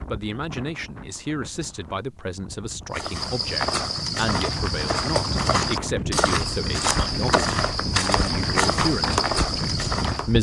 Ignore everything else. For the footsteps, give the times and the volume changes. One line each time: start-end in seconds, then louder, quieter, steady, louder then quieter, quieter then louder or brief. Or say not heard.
2.9-10.3 steady.